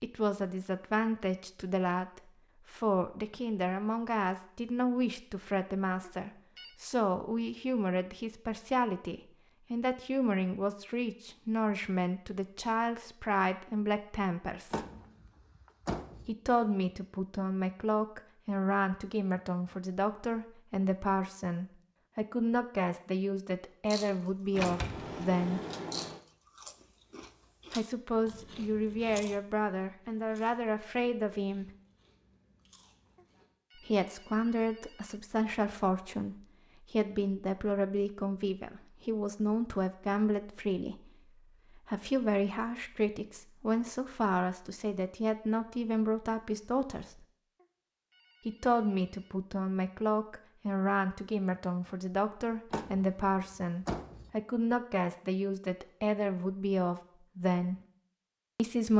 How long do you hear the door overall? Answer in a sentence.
You can hear the door for 5 seconds altogether.